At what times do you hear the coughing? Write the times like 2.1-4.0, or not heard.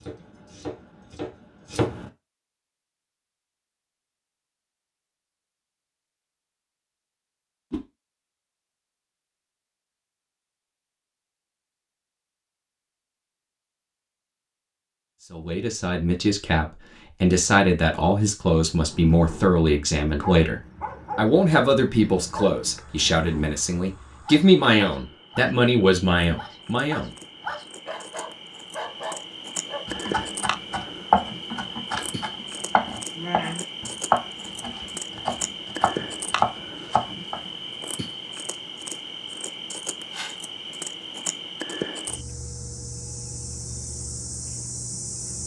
not heard.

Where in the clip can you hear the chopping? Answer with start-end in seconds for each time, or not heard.
0.0-2.1, 29.9-37.4.